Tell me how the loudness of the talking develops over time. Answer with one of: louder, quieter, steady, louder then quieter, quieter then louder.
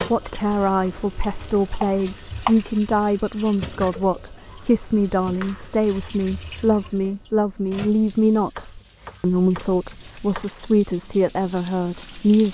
steady.